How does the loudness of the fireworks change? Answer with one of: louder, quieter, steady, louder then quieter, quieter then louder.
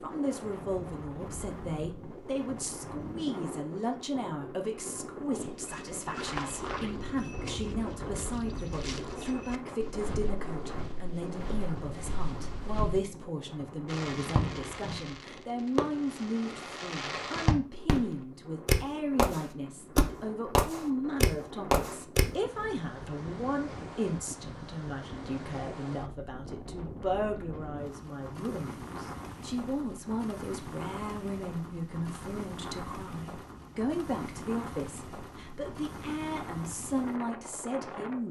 louder.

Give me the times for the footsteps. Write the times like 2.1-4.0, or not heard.
5.3-13.0.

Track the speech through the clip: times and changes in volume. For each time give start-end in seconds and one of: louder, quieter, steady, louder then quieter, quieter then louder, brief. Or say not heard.
0.0-38.2 steady.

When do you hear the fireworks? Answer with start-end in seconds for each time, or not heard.
13.8-22.2.